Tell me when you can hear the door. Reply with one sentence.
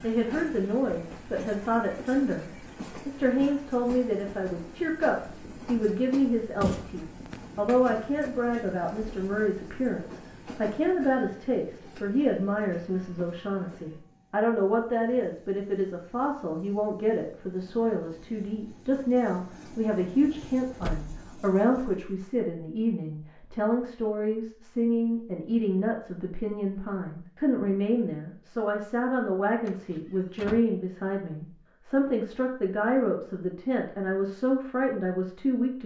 You can hear the door from 6.6 to 7.4 s, from 20.2 to 21.1 s and from 29.6 to 30.6 s.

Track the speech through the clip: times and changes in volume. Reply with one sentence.
The speech can be heard from 0.0 to 35.8 s, at a steady volume.